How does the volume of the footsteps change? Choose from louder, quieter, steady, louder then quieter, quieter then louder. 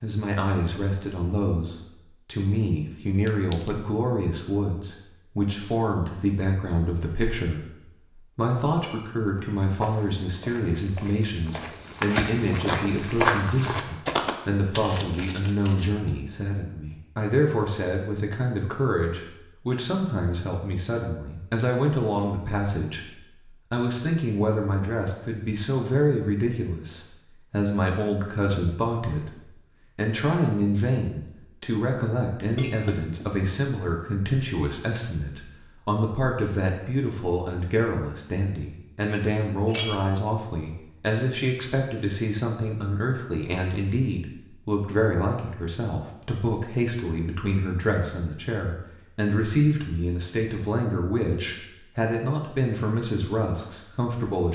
louder then quieter.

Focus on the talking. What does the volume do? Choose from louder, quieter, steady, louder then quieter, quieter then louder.
steady.